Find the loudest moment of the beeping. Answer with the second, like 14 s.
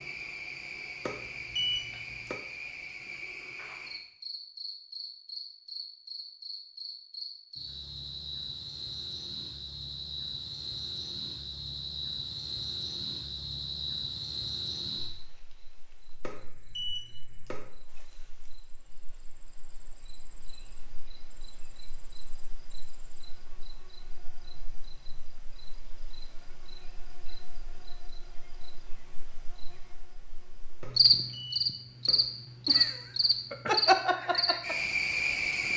2 s.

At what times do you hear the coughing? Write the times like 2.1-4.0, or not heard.
not heard.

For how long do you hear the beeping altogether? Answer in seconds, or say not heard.
4 s.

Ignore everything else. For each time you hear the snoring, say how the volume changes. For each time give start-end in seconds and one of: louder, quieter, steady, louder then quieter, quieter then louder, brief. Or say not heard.
not heard.